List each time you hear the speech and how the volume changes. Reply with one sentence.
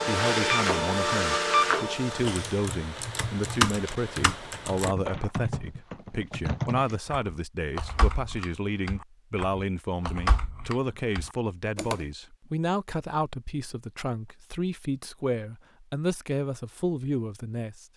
The speech can be heard from 0.0 to 17.9 s, at a steady volume.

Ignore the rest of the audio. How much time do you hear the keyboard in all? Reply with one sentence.
You can hear the keyboard for 10 seconds altogether.